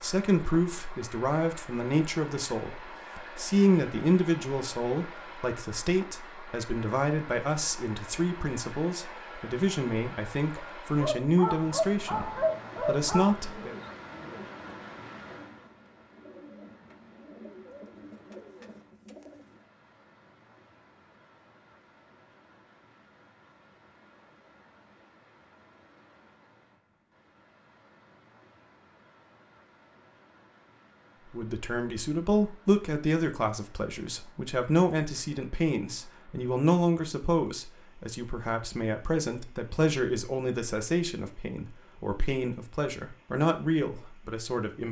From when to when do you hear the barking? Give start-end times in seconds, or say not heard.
10.6-13.3.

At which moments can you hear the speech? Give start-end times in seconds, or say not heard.
0.0-13.7, 31.3-44.8.